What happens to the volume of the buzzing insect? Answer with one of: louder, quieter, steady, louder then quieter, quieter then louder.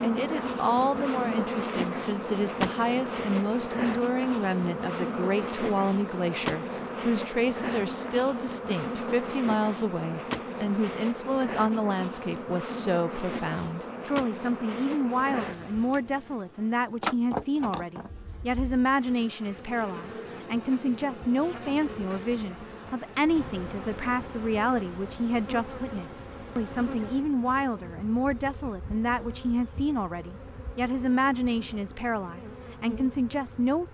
quieter.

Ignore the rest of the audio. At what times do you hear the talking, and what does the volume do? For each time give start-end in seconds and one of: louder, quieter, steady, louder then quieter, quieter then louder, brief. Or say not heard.
0.0-33.8 steady.